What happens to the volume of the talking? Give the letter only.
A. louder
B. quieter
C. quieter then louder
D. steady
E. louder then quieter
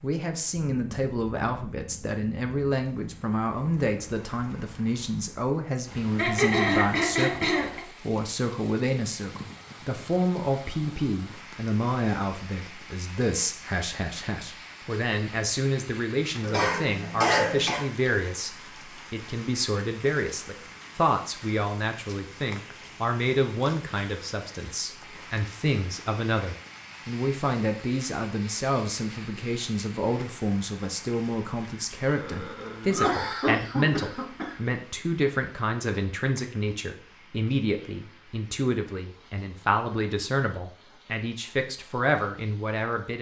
D.